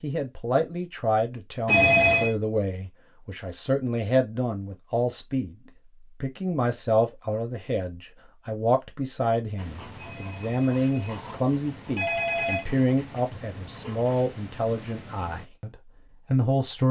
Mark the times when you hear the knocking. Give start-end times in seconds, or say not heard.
not heard.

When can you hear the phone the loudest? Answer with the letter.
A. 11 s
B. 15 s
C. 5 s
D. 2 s
D.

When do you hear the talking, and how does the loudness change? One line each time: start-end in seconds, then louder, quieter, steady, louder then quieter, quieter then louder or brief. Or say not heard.
0.0-16.8 steady.